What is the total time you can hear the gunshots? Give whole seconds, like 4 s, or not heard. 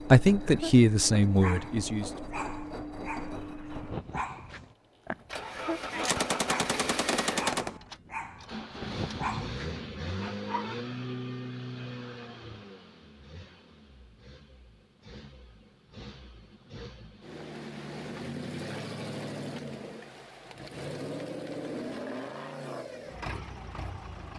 2 s.